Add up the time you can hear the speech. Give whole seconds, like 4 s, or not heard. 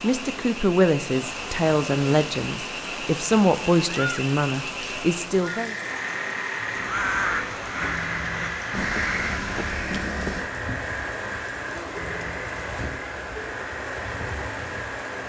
6 s.